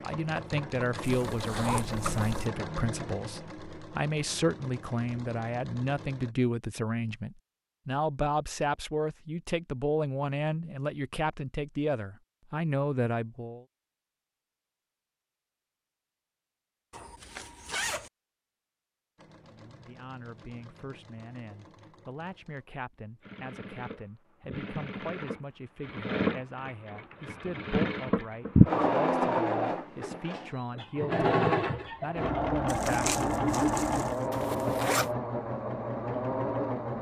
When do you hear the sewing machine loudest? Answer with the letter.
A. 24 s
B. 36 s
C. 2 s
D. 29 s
D.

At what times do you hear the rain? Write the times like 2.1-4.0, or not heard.
not heard.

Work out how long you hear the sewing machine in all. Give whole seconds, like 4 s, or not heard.
24 s.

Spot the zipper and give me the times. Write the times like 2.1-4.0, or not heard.
1.0-2.5, 16.9-18.1, 34.3-35.1.